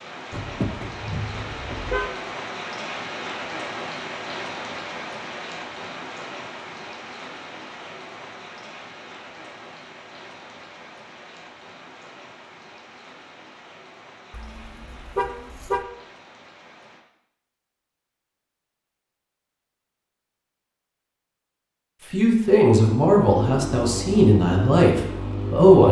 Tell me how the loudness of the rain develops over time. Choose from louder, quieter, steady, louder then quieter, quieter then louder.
quieter.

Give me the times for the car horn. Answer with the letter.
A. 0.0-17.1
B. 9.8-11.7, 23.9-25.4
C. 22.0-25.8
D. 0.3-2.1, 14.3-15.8
D.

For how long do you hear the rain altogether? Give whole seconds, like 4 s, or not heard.
17 s.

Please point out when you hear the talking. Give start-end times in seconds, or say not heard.
22.0-25.8.